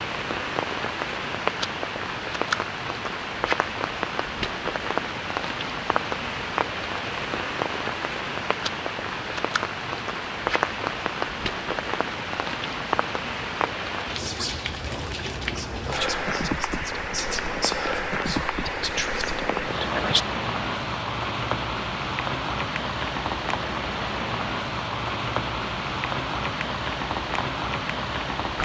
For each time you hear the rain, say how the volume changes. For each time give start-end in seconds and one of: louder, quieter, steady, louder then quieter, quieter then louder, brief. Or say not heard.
0.0-28.6 steady.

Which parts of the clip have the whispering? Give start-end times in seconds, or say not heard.
14.2-20.2.